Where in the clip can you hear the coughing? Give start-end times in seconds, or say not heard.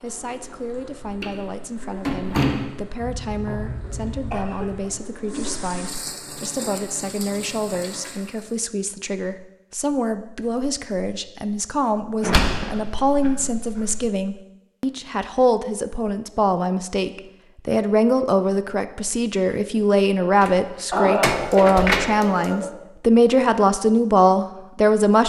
3.0-4.9, 12.2-13.8, 20.9-22.7.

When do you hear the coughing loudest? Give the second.
21 s.